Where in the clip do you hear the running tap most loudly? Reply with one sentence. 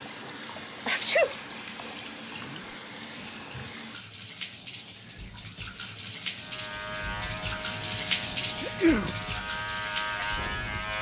The volume of the running tap peaks at 8 seconds.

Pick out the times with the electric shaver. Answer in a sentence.
The electric shaver can be heard from 6.3 to 10.9 s.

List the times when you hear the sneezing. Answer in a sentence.
You can hear the sneezing from 0.8 to 1.4 s and from 8.6 to 9.2 s.